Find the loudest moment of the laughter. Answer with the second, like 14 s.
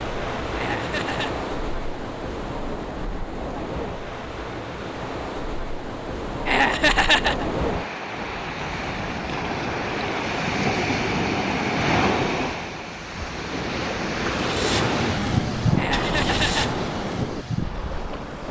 7 s.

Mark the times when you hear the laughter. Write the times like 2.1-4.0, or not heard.
0.6-1.4, 6.5-7.5, 15.8-16.7.